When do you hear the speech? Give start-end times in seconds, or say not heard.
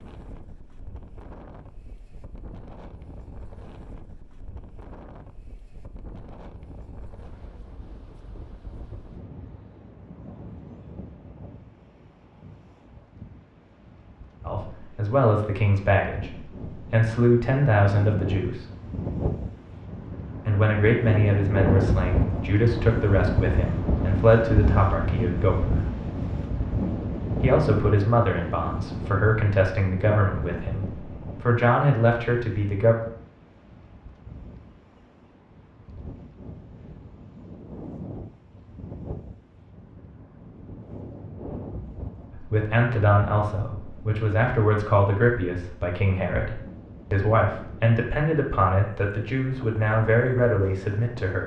14.4-18.6, 20.4-25.9, 27.4-33.0, 42.4-51.4.